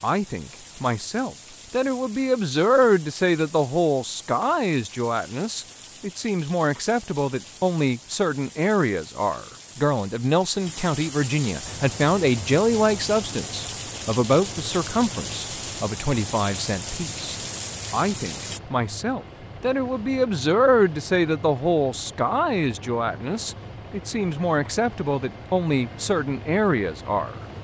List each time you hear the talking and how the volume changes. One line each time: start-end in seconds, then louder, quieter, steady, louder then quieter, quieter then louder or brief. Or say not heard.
0.0-27.4 steady.